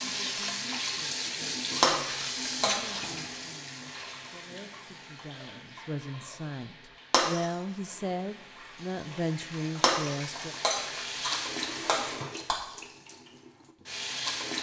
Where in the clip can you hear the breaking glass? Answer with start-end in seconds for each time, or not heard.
1.8-3.0, 7.1-7.5, 9.8-12.6.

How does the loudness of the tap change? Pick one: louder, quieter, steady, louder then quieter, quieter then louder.
quieter then louder.